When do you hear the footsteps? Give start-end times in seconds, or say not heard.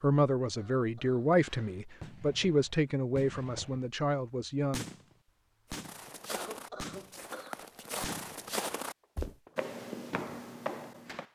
5.7-11.2.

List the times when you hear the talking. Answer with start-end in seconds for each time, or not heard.
0.0-4.8.